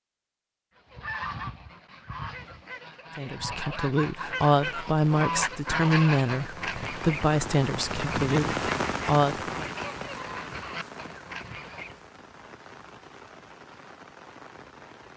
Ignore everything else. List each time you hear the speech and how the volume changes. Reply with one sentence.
The speech can be heard from 3.1 to 9.7 s, at a steady volume.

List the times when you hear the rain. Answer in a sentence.
You can hear the rain from 4.2 to 15.1 s.